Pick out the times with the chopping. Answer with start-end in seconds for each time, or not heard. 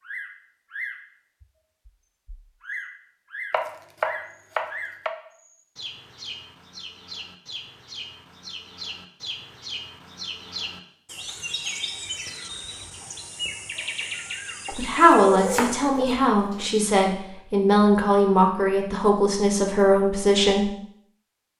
3.5-5.2, 15.3-16.7.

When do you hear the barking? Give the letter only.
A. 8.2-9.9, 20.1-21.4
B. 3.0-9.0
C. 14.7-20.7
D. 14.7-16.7
D.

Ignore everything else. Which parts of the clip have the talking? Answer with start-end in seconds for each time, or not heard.
14.7-20.7.